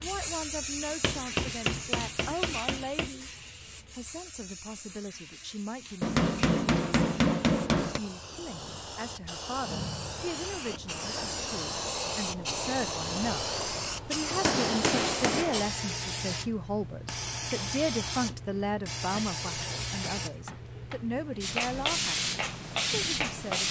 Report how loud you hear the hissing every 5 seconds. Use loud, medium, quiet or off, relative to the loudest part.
medium, medium, loud, loud, loud.